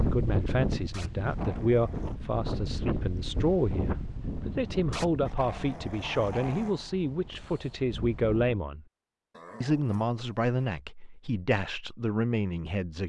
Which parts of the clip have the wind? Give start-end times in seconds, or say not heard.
0.0-8.6.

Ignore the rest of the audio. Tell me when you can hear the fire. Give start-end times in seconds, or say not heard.
not heard.